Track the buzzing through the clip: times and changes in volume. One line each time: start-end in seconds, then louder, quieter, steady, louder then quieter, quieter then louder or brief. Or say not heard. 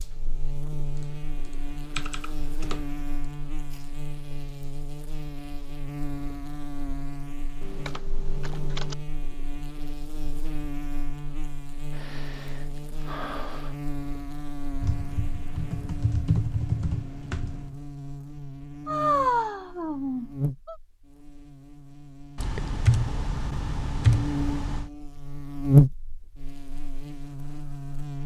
0.0-28.2 louder.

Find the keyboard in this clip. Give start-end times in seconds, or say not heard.
1.9-2.8, 7.6-8.9, 14.8-17.8, 22.4-24.9.